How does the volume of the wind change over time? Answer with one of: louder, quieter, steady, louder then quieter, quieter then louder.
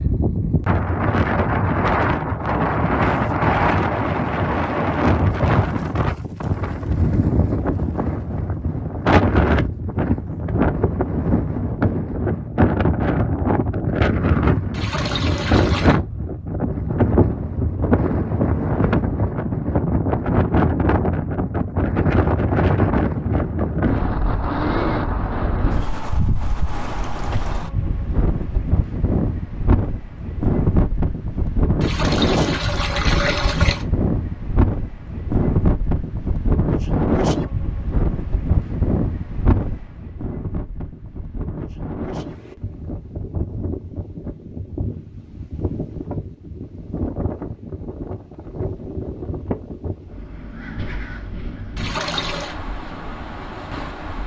quieter.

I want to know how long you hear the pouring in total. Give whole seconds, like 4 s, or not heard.
4 s.